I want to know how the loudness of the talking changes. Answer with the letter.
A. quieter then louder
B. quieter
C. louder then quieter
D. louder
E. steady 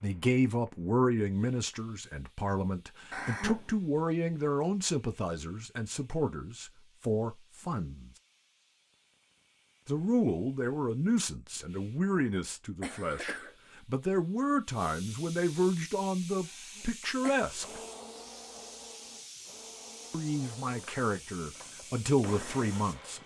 E.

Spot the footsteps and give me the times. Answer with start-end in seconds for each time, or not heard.
not heard.